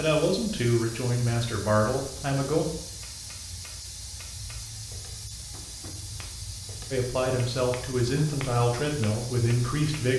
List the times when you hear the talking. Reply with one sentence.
The talking can be heard from 0.0 to 2.6 s and from 6.9 to 10.1 s.